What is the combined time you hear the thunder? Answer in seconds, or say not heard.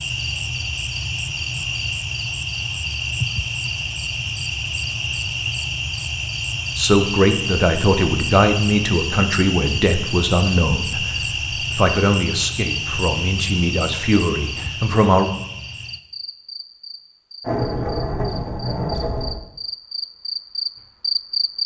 2 s.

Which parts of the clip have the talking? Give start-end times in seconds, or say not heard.
6.8-15.3.